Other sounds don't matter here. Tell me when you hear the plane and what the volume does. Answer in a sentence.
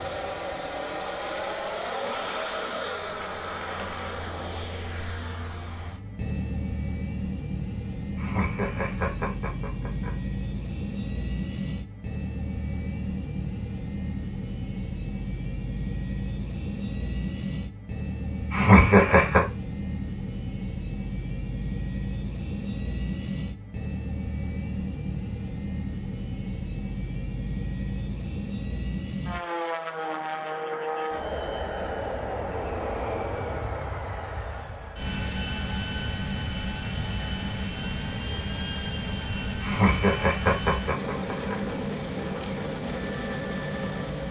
You can hear the plane from 0.0 to 44.2 s, at a steady volume.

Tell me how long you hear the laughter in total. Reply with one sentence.
You can hear the laughter for 5 seconds altogether.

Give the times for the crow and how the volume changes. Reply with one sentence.
You can't hear the crow here.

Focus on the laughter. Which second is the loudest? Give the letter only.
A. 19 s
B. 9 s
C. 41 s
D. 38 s
A.